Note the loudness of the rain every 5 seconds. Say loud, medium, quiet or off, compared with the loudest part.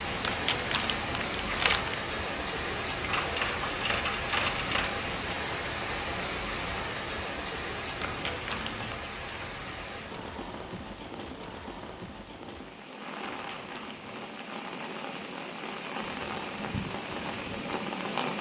loud, loud, medium, loud.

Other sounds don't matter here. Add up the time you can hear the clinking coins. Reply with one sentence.
You can hear the clinking coins for 2 seconds altogether.